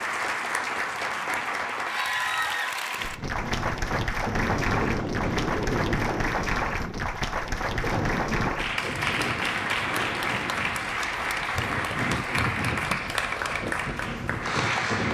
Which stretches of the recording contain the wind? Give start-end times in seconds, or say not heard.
3.0-15.0.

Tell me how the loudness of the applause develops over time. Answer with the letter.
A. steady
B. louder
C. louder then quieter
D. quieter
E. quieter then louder
A.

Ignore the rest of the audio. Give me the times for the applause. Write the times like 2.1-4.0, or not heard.
0.0-15.0.